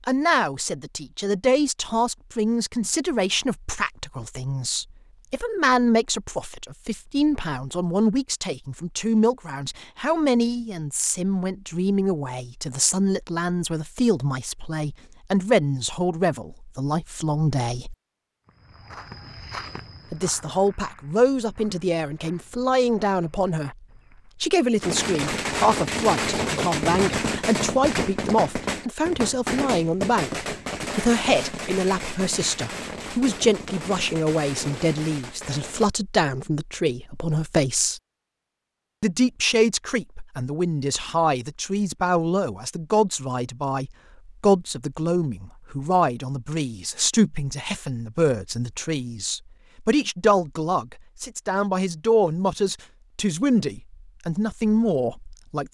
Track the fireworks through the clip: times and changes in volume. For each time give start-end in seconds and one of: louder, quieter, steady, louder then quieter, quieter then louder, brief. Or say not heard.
24.8-35.9 quieter.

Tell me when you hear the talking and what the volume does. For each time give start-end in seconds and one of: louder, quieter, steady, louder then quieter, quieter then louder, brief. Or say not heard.
0.1-17.9 steady
20.1-38.0 steady
39.0-55.6 steady.